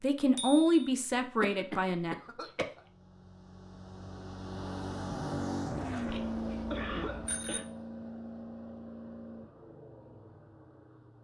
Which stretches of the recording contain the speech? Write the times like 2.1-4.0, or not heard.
0.0-2.1.